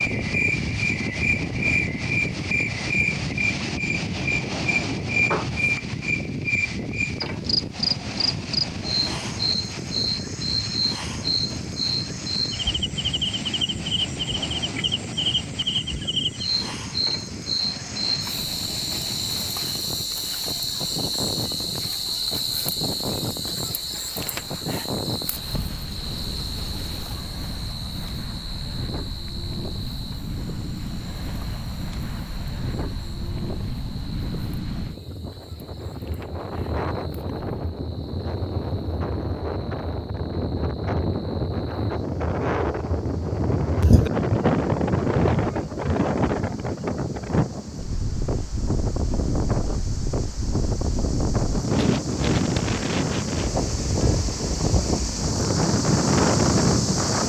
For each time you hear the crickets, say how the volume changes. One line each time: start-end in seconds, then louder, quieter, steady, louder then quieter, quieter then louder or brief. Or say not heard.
0.0-57.2 quieter then louder.